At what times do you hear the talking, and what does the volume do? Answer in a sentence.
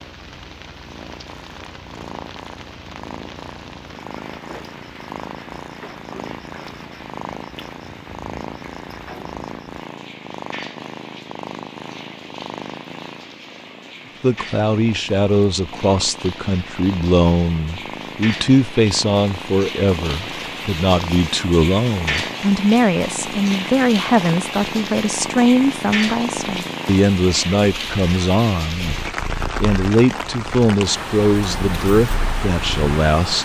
You can hear the talking from 14.2 to 33.4 s, at a steady volume.